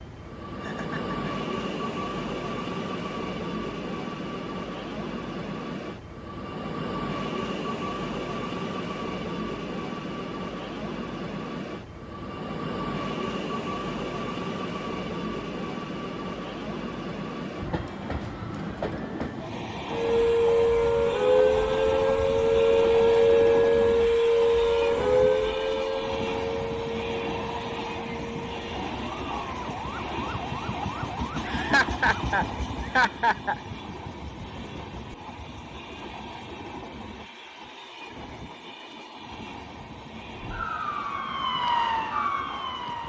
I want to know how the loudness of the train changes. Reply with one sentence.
The loudness of the train goes down.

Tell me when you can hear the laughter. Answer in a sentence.
The laughter can be heard from 0.6 to 1.2 s and from 31.4 to 33.6 s.